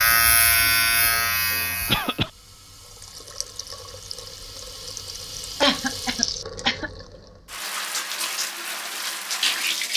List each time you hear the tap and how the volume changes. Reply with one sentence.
The tap can be heard from 0.0 to 9.9 s, getting louder.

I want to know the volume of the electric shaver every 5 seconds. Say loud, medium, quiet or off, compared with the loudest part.
loud, off.